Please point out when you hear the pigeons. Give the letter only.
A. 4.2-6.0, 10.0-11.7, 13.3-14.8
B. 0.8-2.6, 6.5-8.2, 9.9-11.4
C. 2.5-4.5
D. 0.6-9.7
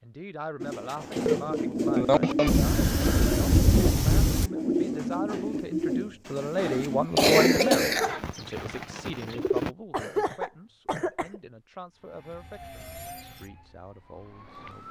D.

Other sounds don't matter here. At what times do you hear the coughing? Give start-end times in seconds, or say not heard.
0.8-2.6, 6.5-8.2, 9.9-11.4.